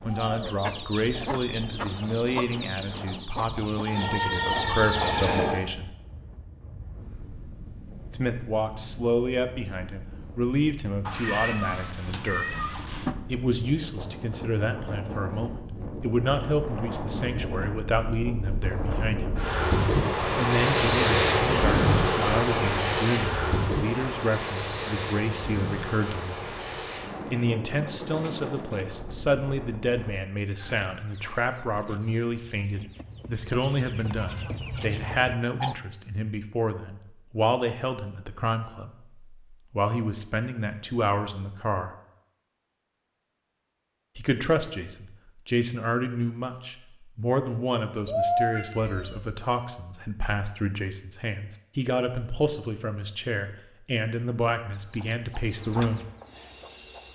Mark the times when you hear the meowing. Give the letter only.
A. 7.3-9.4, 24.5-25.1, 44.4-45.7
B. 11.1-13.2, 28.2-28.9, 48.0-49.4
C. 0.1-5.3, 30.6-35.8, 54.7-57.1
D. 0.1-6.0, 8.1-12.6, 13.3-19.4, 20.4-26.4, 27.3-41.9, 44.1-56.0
B.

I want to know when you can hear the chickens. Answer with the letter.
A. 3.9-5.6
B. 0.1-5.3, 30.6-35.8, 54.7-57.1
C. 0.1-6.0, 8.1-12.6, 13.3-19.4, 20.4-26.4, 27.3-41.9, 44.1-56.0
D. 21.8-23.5
B.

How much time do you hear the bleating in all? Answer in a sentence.
You can hear the bleating for 2 seconds altogether.